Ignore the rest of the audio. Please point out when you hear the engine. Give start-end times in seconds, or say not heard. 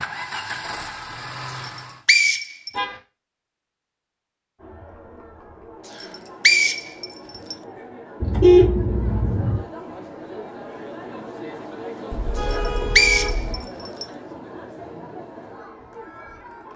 0.0-2.0.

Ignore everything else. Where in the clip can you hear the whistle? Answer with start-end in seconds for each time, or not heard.
1.6-2.7, 6.0-7.5, 12.5-14.1.